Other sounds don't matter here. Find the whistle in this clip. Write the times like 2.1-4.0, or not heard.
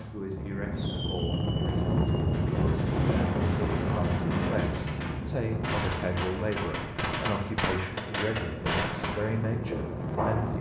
not heard.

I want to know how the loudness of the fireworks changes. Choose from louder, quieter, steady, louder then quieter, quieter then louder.
louder.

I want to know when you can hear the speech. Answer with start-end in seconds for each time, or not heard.
0.0-10.5.